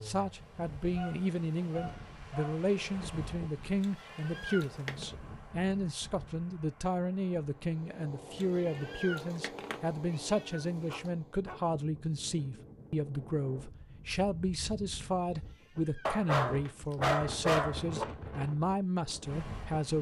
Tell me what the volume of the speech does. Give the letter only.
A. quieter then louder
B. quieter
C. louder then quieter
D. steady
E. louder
D.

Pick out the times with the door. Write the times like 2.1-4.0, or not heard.
not heard.